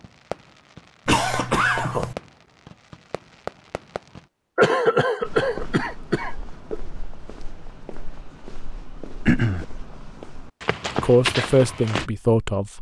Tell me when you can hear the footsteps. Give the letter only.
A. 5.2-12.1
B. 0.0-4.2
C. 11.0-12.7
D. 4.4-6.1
A.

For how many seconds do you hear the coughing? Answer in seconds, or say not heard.
4 s.